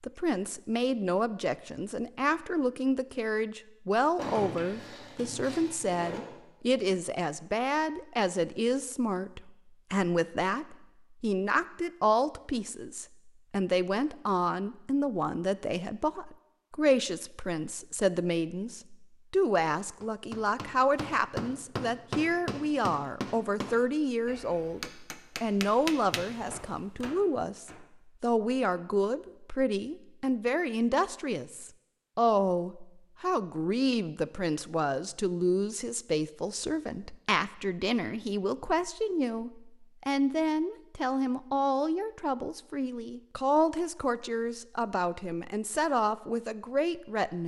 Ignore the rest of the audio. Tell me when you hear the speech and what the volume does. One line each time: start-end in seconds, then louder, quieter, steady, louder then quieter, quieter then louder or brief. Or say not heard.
0.0-47.4 steady.